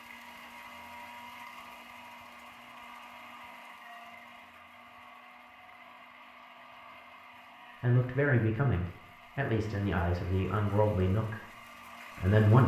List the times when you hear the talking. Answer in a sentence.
You can hear the talking from 7.8 to 11.4 s and from 12.2 to 12.6 s.